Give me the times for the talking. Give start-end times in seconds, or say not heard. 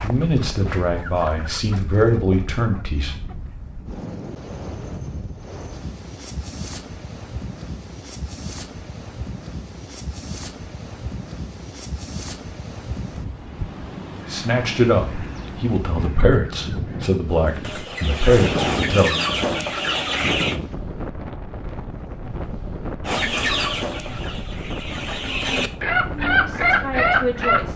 0.0-3.1, 14.3-19.2, 26.2-27.7.